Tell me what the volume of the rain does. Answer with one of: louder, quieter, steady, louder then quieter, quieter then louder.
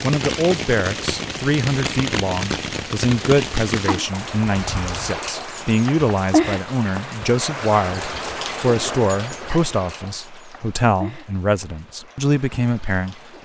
quieter.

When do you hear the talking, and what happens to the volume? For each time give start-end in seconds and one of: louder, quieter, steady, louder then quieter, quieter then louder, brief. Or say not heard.
0.0-13.2 steady.